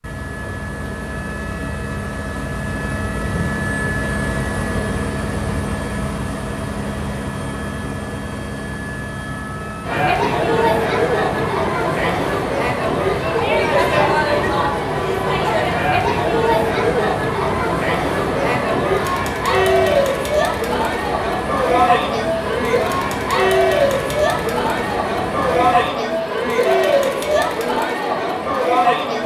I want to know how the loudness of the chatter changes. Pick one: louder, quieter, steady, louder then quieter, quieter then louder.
steady.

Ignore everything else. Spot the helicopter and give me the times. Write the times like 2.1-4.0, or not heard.
0.0-25.9.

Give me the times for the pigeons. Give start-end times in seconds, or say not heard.
not heard.